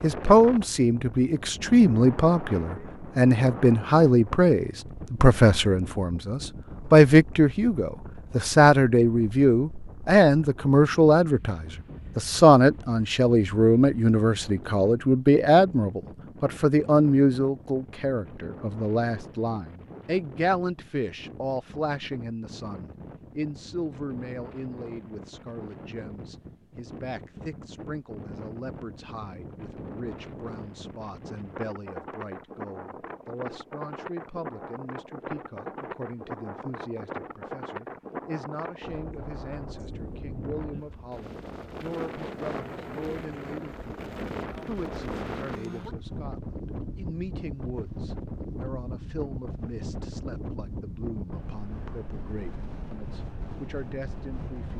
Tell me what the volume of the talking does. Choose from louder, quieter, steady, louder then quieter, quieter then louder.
quieter.